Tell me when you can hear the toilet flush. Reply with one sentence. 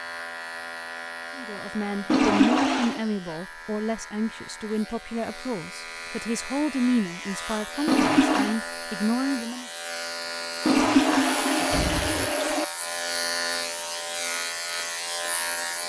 You can hear the toilet flush from 2.1 to 3.0 s, from 7.8 to 8.6 s and from 10.7 to 12.7 s.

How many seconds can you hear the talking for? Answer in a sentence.
You can hear the talking for 8 seconds altogether.